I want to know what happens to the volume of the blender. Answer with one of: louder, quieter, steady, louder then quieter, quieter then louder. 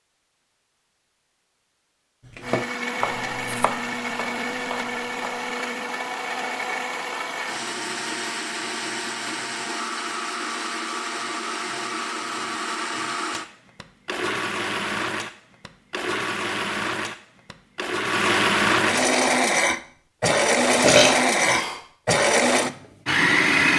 louder.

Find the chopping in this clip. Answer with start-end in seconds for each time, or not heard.
2.4-5.5.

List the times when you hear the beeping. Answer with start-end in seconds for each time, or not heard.
not heard.